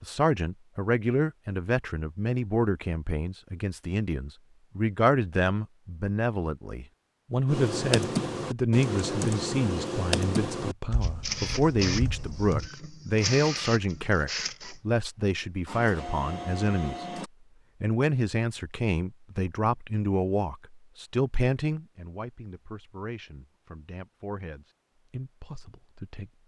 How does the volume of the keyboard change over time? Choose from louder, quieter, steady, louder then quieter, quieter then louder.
quieter.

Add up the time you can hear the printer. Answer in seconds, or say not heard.
6 s.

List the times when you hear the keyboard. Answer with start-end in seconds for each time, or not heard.
7.5-12.7.